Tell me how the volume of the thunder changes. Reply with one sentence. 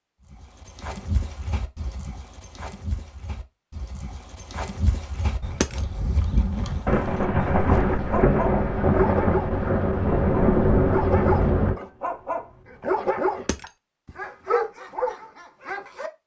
The loudness of the thunder stays about the same.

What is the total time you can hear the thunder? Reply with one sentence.
The thunder can be heard for 5 seconds in total.